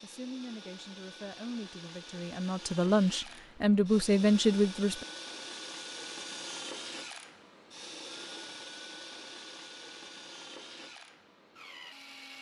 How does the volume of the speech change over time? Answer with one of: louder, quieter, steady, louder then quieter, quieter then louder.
louder.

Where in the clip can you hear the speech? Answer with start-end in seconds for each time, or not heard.
0.0-5.0.